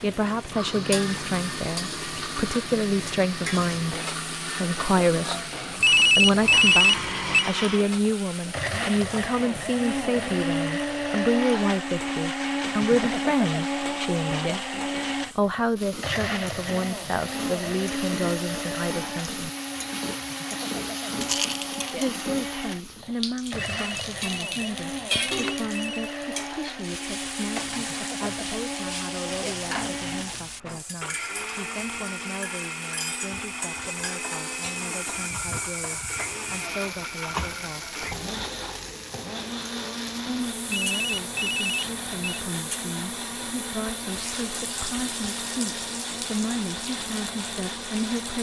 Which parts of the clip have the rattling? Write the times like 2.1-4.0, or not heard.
21.1-21.9.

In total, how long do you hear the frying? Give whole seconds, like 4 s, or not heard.
48 s.